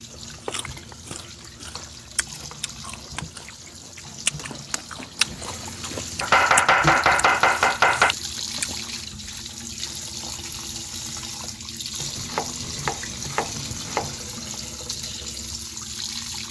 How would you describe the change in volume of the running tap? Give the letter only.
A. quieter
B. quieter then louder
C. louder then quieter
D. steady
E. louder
E.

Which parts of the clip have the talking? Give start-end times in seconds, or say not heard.
not heard.